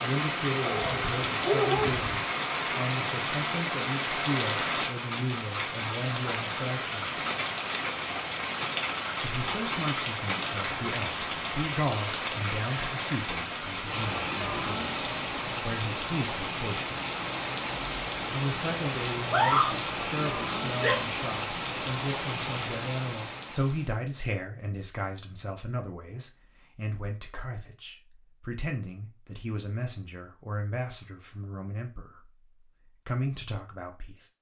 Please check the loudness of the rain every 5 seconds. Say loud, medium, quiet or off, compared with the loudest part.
loud, loud, loud, loud, loud, off, off.